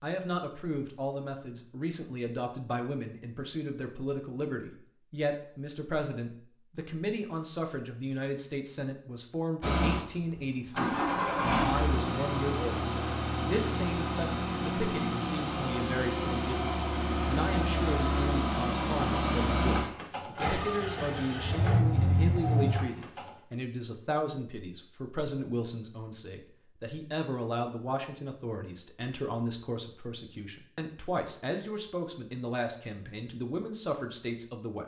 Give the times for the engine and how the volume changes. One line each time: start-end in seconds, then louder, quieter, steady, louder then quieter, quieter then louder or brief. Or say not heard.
9.6-23.3 steady.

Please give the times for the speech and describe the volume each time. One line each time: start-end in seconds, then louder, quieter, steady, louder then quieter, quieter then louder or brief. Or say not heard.
0.0-12.8 steady
13.4-34.8 steady.